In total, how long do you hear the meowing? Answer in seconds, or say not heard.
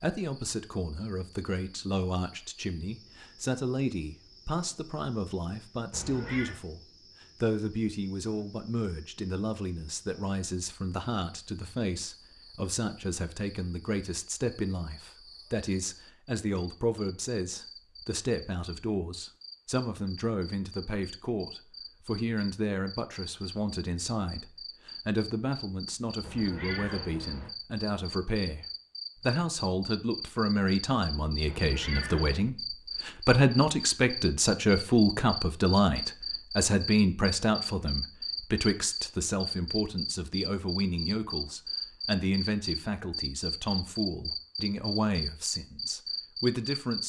3 s.